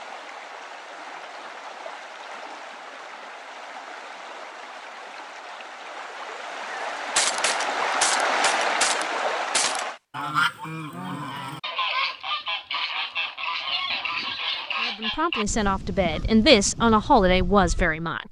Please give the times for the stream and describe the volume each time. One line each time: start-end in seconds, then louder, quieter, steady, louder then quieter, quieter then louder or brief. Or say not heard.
0.0-10.0 louder.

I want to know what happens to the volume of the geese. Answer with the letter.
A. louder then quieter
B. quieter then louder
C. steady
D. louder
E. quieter
E.